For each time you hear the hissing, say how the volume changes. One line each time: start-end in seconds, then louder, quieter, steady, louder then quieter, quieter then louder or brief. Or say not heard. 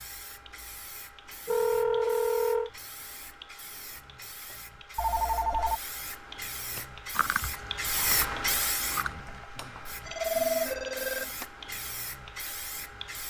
0.0-13.2 louder then quieter.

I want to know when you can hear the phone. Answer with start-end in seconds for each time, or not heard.
1.4-2.7, 5.0-5.8, 10.1-11.4.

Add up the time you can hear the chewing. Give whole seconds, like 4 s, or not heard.
3 s.